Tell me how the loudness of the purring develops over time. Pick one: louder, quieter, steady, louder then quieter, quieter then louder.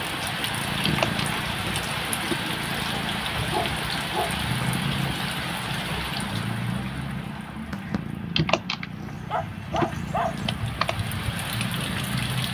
steady.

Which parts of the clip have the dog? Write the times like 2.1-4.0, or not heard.
3.5-4.3, 9.1-10.4.